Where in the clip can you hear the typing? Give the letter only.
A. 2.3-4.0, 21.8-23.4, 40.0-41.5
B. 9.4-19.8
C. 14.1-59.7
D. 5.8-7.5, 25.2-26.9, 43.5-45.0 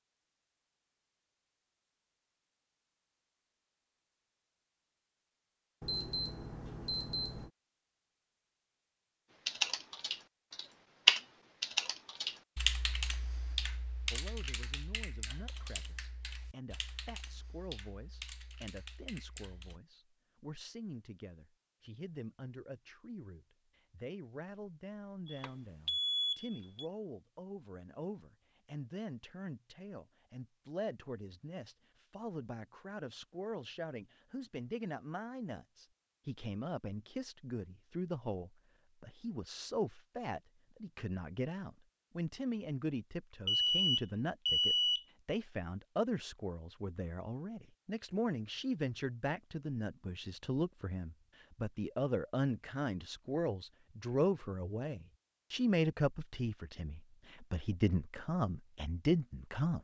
B.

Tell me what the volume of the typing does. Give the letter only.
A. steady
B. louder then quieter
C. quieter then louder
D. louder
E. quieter
E.